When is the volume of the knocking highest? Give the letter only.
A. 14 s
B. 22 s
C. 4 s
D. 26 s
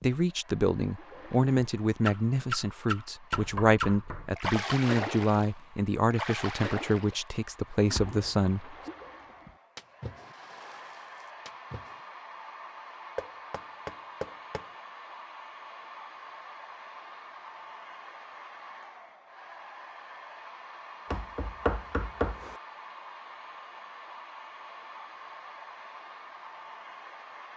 B.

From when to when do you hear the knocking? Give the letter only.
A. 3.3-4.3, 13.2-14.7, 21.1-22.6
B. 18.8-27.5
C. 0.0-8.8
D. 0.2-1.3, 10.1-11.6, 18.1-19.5
A.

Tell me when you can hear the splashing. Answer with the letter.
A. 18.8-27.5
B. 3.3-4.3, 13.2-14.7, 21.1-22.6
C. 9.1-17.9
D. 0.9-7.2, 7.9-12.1
D.